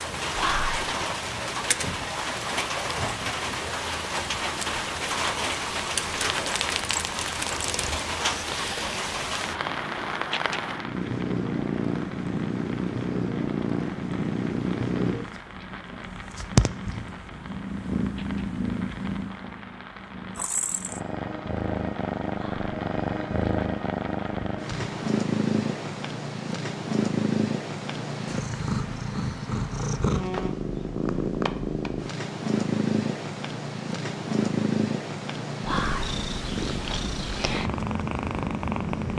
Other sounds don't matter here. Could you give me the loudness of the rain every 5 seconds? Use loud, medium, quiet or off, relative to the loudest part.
loud, loud, medium, quiet, quiet, off, off, off.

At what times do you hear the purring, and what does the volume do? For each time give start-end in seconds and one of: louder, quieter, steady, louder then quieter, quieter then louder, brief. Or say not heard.
0.0-39.1 louder.